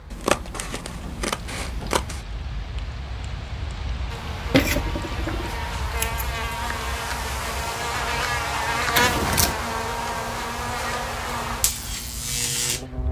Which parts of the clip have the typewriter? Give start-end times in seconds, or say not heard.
not heard.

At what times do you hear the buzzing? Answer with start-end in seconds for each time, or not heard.
4.1-13.0.